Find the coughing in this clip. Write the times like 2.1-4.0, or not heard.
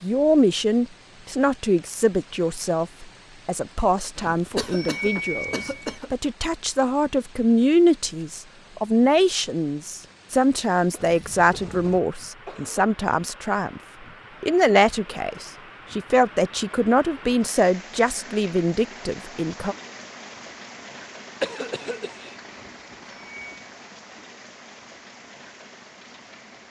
4.5-6.1, 10.9-12.8, 21.4-22.4.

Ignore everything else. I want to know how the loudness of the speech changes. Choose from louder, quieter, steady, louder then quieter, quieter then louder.
steady.